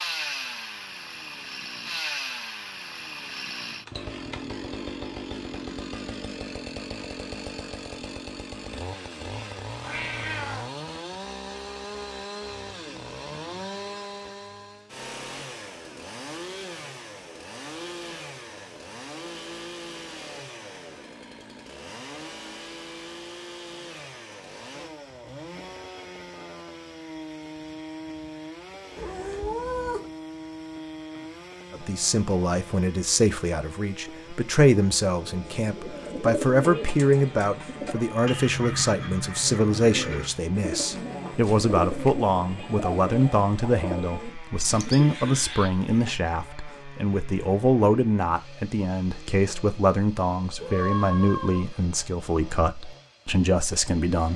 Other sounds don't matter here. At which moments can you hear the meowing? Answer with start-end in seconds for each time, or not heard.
9.8-10.7, 28.9-30.1, 50.5-51.6.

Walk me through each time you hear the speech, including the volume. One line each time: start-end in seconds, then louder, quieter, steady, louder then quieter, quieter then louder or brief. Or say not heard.
31.7-54.3 steady.